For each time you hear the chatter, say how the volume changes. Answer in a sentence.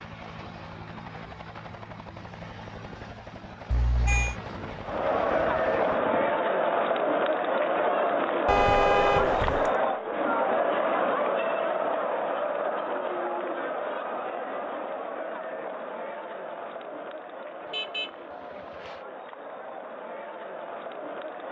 You can hear the chatter from 4.8 to 21.4 s, getting quieter.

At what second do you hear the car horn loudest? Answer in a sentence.
The volume of the car horn peaks at 9 seconds.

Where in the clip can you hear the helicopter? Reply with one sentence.
The helicopter can be heard from 0.0 to 6.5 s.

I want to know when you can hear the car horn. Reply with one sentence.
You can hear the car horn from 3.7 to 4.3 s, from 8.4 to 9.7 s and from 17.6 to 19.1 s.